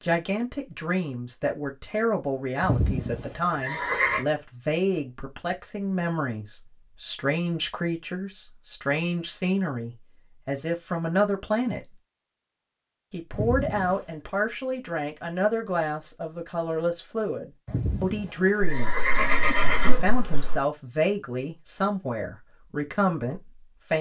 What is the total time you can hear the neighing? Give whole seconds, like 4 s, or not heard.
5 s.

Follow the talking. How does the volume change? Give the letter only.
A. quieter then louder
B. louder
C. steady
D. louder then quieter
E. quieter
C.